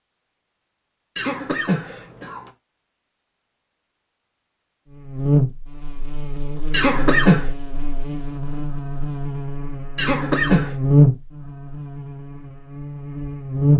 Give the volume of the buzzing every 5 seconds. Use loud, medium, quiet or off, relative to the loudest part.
off, medium, loud.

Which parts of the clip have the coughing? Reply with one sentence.
You can hear the coughing from 1.1 to 2.5 s, from 6.7 to 7.5 s and from 9.9 to 10.8 s.